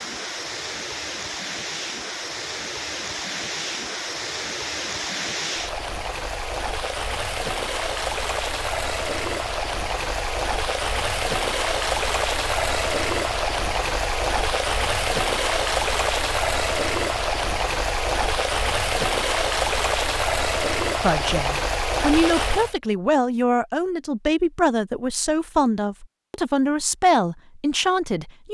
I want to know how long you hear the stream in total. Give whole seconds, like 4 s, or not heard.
23 s.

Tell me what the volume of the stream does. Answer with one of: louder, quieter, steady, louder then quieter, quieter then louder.
louder.